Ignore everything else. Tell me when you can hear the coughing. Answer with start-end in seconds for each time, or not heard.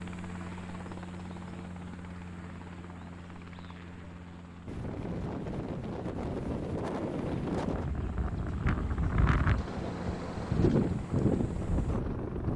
not heard.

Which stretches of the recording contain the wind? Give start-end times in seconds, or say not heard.
4.7-12.5.